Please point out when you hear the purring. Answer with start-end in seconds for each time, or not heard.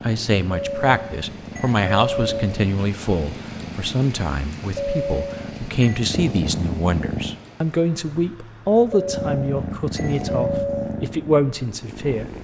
0.0-7.4, 9.1-12.3.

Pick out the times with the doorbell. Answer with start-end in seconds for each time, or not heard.
0.5-2.5, 4.8-6.0, 8.9-10.9.